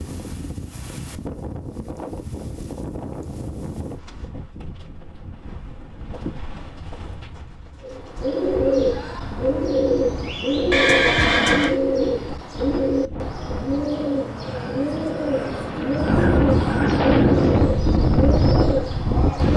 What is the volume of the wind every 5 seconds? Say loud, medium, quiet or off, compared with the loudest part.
quiet, quiet, quiet, loud.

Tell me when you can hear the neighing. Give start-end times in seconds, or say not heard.
10.7-11.8.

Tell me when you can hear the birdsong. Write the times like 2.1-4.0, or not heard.
7.8-19.5.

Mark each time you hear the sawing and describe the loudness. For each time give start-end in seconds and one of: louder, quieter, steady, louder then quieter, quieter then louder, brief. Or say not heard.
not heard.